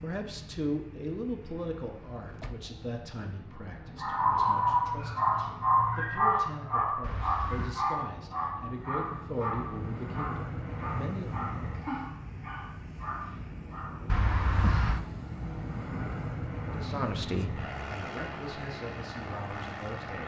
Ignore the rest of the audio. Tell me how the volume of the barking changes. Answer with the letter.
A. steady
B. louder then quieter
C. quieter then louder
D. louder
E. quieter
E.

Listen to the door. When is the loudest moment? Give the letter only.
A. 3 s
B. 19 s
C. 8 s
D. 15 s
D.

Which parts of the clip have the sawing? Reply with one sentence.
The sawing can't be heard in this clip.